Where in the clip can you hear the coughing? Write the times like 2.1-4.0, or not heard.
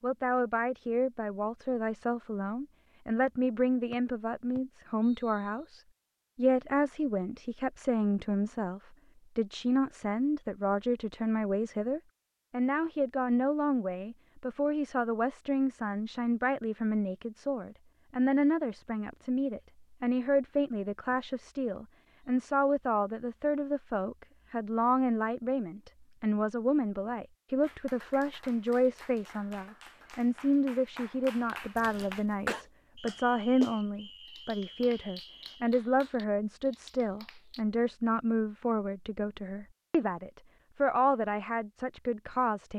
31.8-32.6.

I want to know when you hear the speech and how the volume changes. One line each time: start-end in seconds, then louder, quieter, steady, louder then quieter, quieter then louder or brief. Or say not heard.
0.0-42.7 steady.